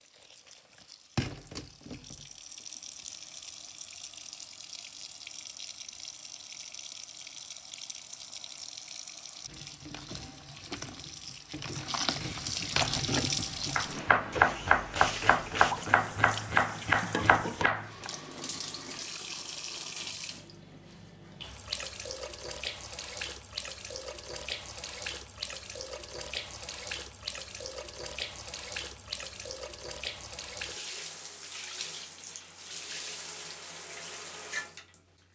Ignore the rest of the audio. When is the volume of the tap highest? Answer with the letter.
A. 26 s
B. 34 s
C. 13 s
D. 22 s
C.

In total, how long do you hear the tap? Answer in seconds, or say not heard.
35 s.